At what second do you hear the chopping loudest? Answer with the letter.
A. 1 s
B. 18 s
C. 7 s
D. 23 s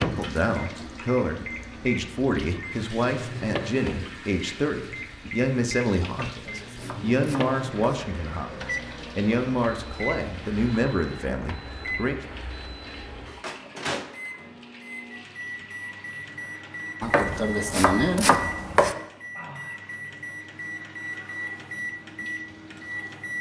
B.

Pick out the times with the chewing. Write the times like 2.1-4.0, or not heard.
not heard.